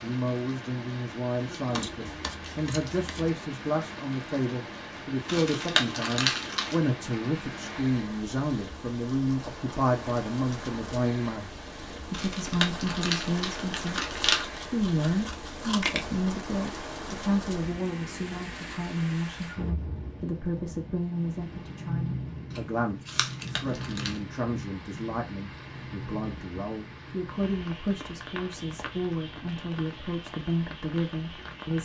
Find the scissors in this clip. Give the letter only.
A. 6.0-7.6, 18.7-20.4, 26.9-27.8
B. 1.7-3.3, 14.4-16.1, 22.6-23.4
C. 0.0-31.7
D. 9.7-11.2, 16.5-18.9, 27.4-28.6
B.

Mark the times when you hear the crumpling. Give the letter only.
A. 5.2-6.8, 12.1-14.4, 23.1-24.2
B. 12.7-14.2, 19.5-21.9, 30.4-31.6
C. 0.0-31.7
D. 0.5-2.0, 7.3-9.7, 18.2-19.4
A.